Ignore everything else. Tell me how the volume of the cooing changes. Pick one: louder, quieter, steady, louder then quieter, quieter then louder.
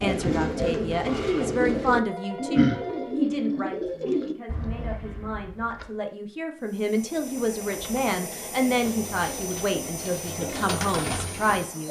quieter then louder.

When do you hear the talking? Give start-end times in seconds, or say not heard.
0.0-11.8.